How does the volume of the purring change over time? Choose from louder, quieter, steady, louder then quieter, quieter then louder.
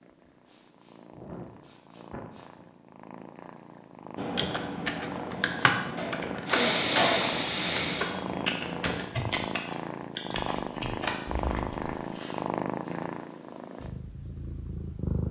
louder.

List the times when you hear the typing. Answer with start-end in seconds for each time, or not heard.
4.2-11.9.